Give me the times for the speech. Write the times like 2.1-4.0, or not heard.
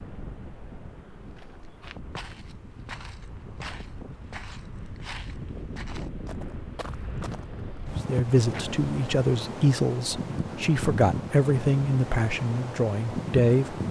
8.1-13.8.